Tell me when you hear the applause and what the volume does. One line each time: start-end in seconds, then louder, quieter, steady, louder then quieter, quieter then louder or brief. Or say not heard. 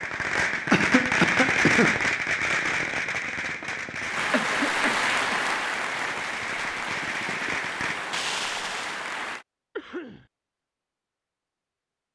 4.0-9.4 quieter.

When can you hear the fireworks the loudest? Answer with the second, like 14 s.
2 s.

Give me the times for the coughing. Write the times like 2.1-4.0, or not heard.
0.7-2.0, 4.3-5.5, 9.8-10.2.